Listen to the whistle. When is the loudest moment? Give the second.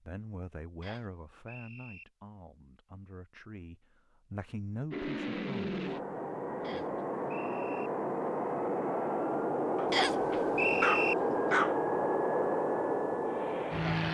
11 s.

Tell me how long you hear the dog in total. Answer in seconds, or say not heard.
2 s.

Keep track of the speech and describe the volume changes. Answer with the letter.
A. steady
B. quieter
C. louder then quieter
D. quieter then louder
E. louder
D.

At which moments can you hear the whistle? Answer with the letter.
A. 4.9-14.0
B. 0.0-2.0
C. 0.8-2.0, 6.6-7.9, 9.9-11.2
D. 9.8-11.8
C.